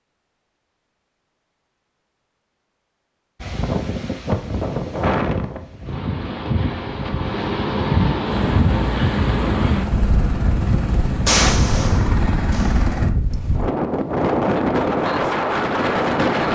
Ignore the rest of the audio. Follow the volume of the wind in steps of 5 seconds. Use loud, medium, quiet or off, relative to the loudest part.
medium, loud, loud, loud.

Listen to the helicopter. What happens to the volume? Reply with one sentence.
The volume of the helicopter stays about the same.